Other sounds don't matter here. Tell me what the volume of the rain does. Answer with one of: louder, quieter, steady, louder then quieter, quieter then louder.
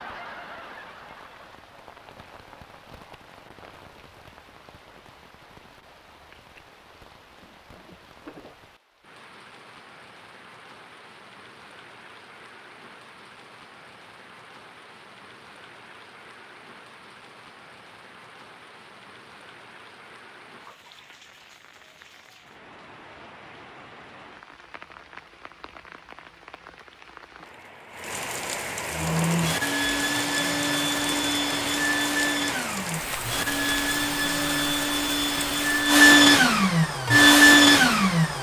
louder.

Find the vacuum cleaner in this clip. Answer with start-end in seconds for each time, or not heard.
28.9-38.3.